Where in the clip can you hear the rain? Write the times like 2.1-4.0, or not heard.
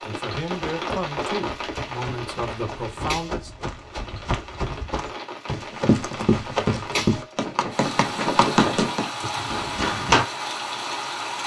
0.0-11.4.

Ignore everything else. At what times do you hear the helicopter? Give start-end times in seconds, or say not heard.
not heard.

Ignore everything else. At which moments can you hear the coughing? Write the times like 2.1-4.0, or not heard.
not heard.